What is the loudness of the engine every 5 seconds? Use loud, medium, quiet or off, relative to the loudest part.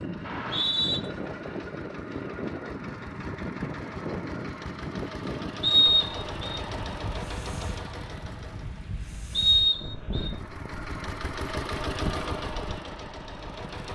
medium, loud, loud.